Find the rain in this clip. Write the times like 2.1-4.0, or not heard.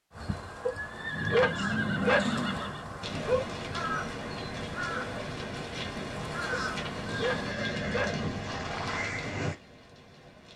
3.0-10.5.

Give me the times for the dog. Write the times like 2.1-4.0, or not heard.
0.7-3.5, 6.5-8.6.